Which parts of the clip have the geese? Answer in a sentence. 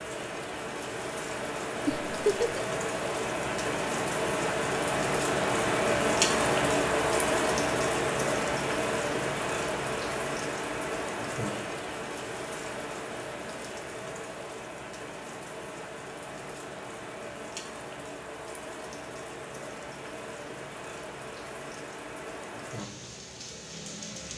The geese can't be heard in this clip.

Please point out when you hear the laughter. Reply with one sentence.
The laughter can be heard from 1.9 to 2.6 s.